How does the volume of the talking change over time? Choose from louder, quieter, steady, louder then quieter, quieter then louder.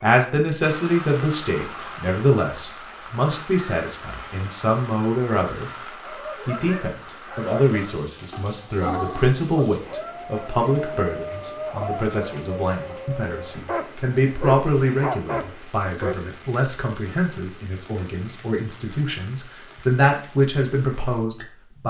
steady.